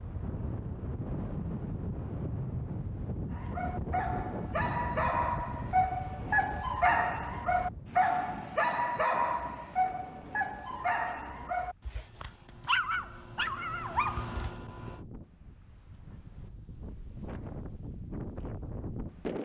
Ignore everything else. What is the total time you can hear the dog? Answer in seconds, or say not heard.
12 s.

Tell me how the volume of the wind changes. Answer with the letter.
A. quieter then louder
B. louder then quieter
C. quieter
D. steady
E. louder
A.